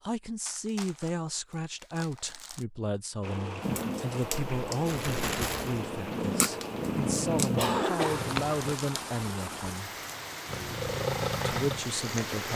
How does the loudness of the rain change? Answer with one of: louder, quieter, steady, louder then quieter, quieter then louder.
steady.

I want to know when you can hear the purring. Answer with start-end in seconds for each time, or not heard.
3.6-8.8, 10.4-12.5.